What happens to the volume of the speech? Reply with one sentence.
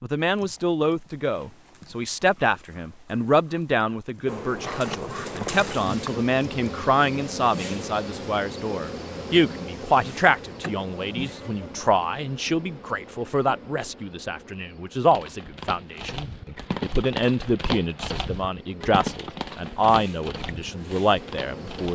The volume of the speech stays about the same.